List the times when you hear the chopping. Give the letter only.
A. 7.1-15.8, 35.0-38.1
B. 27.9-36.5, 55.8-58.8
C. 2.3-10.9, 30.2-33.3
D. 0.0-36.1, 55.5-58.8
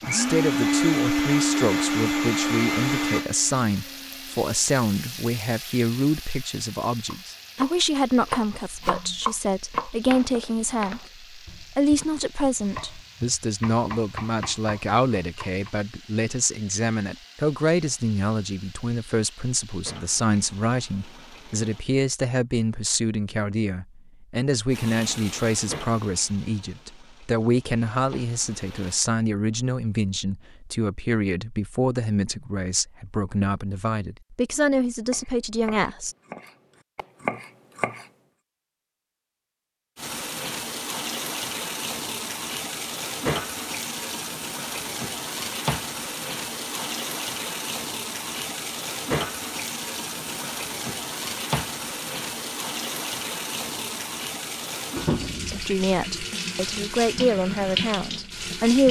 A.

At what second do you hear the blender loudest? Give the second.
1 s.